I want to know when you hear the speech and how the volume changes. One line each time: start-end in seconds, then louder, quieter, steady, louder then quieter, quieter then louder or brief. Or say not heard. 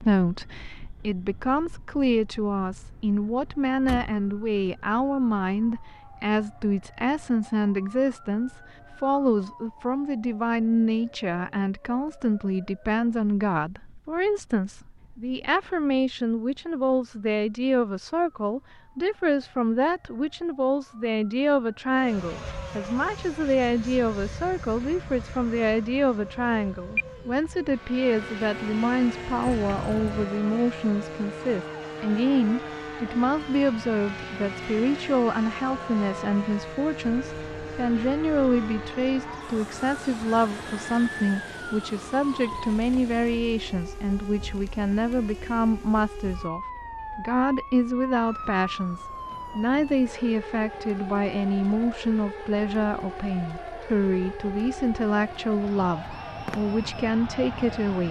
0.0-58.0 steady.